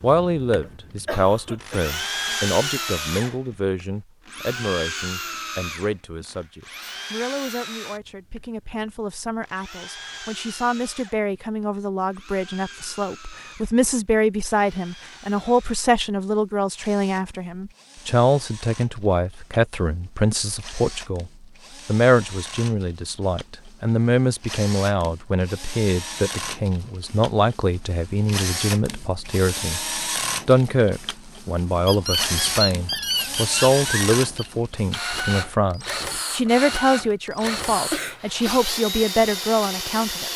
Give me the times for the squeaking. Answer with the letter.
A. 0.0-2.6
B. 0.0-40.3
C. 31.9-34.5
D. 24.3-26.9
C.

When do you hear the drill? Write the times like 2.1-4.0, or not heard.
0.0-40.3.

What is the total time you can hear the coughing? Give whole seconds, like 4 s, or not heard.
3 s.